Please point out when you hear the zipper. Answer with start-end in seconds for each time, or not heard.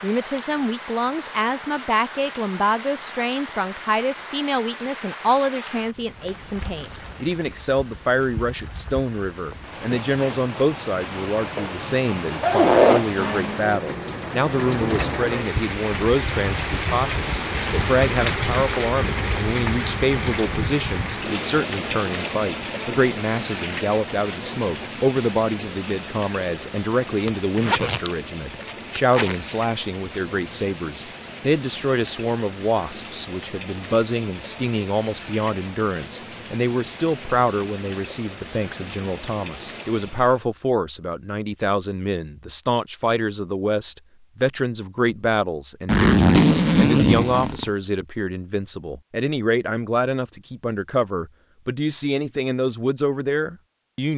12.4-13.2, 27.2-29.4, 45.9-47.6.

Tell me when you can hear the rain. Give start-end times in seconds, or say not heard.
0.0-40.5.